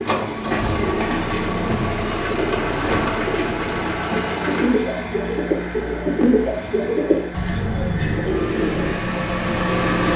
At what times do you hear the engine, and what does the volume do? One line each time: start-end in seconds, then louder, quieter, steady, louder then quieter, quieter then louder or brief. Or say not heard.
0.0-10.1 quieter then louder.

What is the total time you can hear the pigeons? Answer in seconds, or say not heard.
10 s.